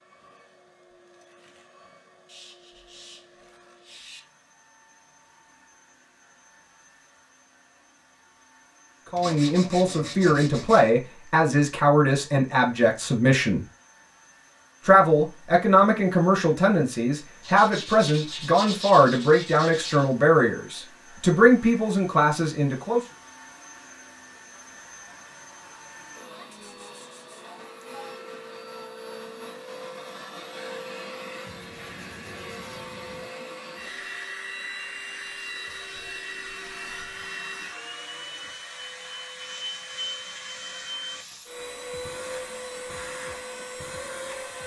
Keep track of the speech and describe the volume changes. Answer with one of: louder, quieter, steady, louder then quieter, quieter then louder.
steady.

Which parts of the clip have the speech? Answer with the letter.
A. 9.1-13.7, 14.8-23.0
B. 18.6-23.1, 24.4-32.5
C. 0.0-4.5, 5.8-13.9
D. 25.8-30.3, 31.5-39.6
A.